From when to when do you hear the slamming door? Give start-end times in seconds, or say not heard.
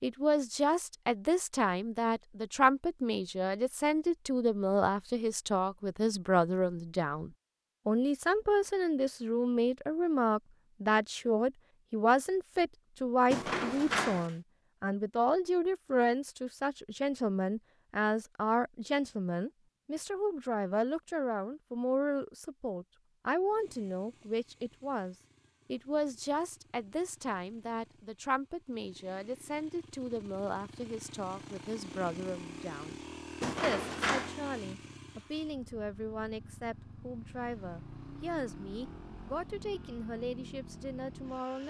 13.3-14.3, 33.4-34.4.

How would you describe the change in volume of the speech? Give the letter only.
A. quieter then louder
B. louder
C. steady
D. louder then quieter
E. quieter
E.